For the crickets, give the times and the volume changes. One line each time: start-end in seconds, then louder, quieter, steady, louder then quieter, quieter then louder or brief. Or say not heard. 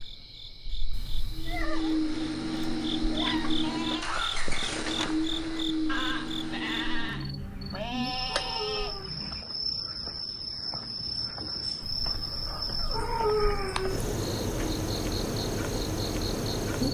0.0-16.8 louder.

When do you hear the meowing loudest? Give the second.
13 s.